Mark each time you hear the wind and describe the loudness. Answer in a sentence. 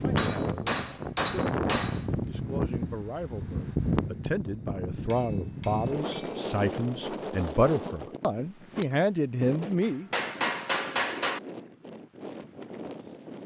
The wind can be heard from 0.0 to 13.4 s, getting quieter.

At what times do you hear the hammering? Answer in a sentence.
You can hear the hammering from 0.1 to 2.1 s, from 5.1 to 6.5 s and from 9.8 to 11.4 s.